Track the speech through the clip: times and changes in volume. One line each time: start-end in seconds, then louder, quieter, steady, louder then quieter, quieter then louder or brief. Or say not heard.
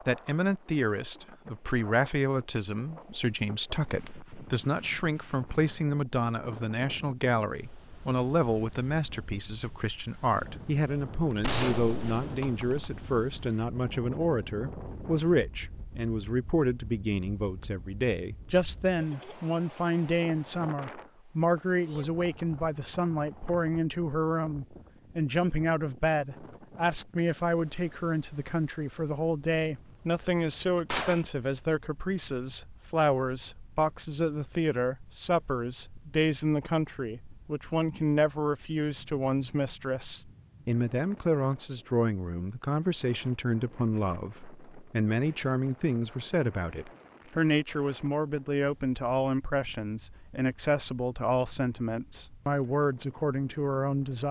0.1-54.2 steady.